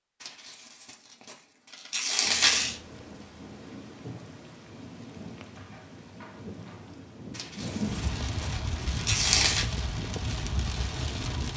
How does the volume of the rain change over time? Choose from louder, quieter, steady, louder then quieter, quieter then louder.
louder.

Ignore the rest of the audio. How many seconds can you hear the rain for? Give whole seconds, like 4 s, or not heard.
9 s.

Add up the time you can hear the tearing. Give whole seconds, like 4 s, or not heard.
5 s.